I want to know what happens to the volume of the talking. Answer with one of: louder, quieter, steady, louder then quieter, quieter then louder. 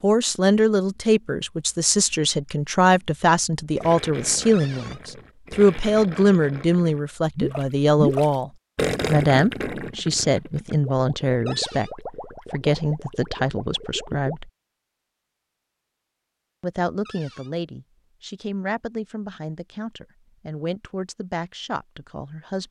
quieter.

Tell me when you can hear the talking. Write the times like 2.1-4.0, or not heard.
0.0-14.5, 16.6-22.6.